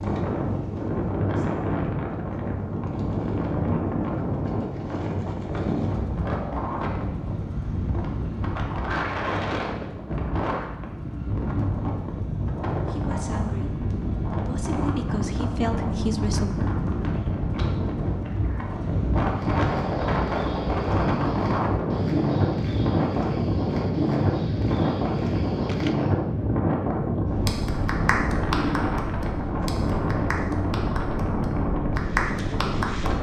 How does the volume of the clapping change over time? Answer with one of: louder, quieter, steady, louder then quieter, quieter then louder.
quieter then louder.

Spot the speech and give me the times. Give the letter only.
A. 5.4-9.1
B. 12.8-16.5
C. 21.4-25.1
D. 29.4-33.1
B.